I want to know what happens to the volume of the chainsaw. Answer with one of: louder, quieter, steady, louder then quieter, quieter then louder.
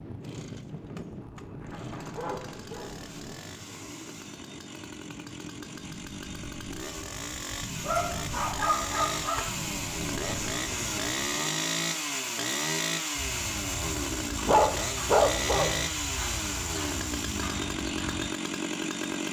louder.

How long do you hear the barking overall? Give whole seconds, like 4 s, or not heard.
5 s.